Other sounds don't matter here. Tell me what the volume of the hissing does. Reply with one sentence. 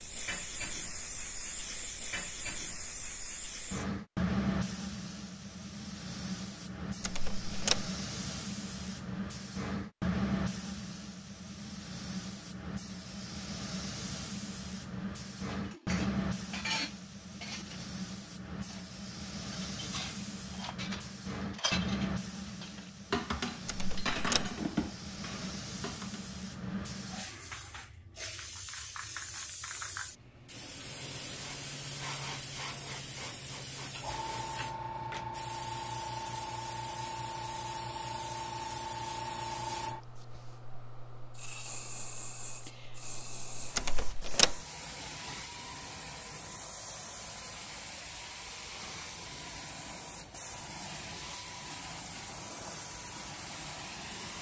The loudness of the hissing goes down.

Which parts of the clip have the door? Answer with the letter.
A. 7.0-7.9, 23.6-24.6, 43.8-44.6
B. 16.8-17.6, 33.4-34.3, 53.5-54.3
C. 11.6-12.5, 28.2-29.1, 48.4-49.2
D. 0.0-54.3
A.